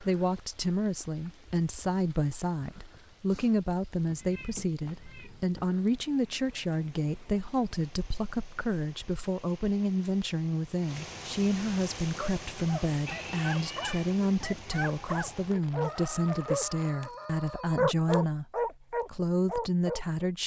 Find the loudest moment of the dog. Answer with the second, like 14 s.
18 s.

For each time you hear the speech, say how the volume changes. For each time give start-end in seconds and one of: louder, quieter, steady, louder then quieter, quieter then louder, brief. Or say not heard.
0.0-20.4 steady.